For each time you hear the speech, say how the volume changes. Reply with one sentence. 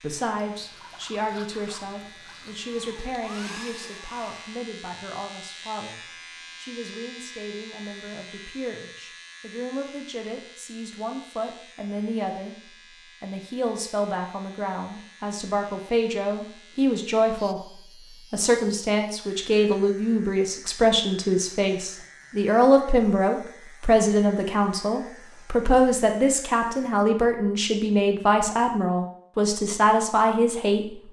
The speech can be heard from 0.0 to 31.0 s, getting louder.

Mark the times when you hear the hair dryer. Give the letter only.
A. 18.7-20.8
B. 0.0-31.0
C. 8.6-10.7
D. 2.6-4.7
D.